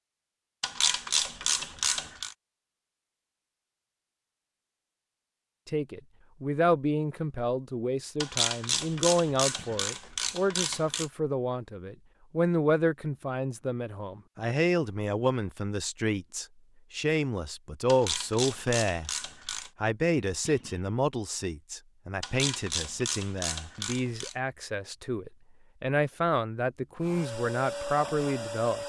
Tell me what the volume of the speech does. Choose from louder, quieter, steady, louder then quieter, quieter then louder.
steady.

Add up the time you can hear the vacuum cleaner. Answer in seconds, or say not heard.
2 s.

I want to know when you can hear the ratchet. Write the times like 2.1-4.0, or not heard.
0.6-2.4, 8.2-11.1, 17.9-19.7, 22.2-24.4.